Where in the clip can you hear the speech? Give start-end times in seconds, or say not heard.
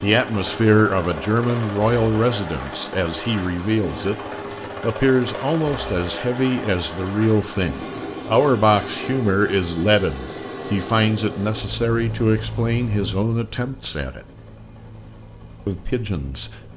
0.0-4.2, 4.8-14.2, 15.7-16.5.